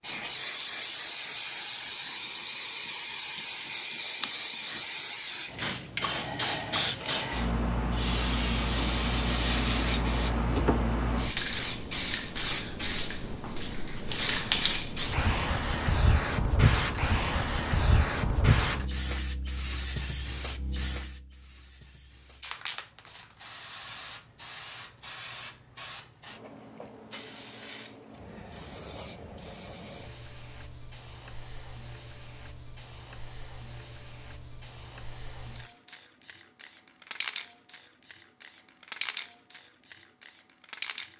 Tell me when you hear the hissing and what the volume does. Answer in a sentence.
You can hear the hissing from 0.0 to 41.1 s, getting quieter.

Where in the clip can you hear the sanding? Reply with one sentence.
You can hear the sanding from 8.8 to 10.3 s.